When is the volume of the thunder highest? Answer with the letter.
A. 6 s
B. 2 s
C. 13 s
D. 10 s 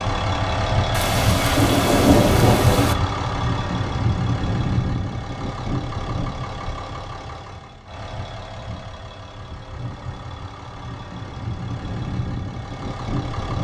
B.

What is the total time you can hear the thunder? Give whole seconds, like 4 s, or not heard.
2 s.